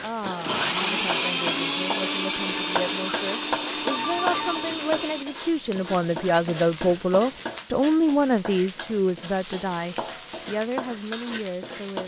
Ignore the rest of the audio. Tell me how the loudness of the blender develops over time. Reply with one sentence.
The volume of the blender goes down.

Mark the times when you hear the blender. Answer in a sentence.
The blender can be heard from 0.2 to 5.4 s.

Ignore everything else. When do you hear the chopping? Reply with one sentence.
You can't hear the chopping here.